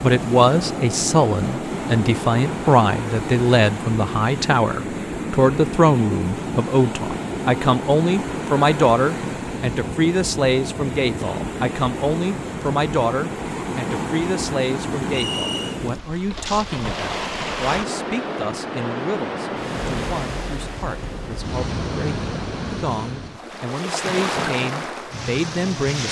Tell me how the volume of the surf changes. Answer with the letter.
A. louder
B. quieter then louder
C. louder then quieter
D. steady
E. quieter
D.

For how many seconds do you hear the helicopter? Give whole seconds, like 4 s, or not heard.
not heard.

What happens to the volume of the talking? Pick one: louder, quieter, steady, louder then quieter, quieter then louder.
quieter.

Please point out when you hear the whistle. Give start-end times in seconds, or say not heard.
15.1-15.8.